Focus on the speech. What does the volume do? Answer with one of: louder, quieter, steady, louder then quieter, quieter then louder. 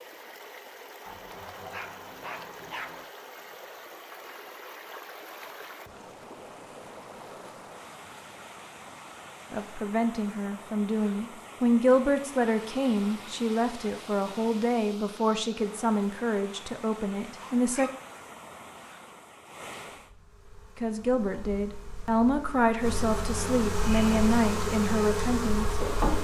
steady.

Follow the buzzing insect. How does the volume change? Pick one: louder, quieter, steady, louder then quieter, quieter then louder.
louder.